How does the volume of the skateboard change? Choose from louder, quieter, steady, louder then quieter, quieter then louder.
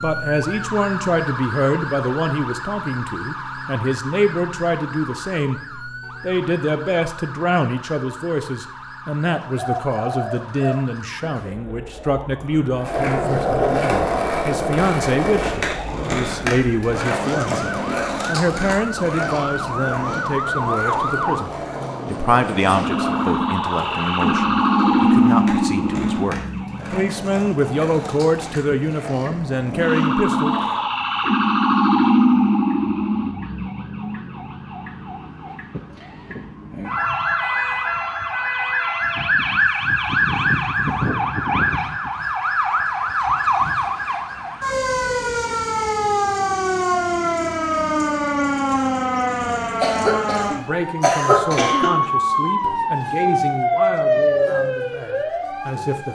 quieter.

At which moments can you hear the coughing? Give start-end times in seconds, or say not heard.
49.4-52.0.